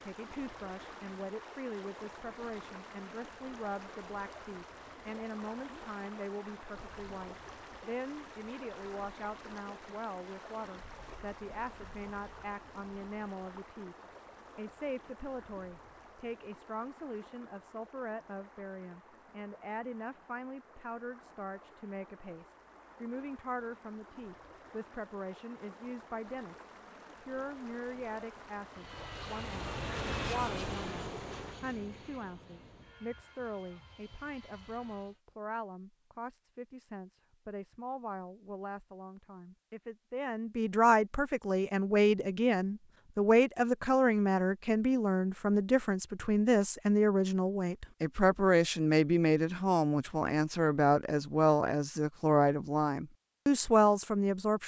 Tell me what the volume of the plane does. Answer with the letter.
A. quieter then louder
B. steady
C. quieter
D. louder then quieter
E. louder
C.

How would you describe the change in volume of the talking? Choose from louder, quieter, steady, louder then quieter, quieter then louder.
louder.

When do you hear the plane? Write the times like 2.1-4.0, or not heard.
28.7-35.2.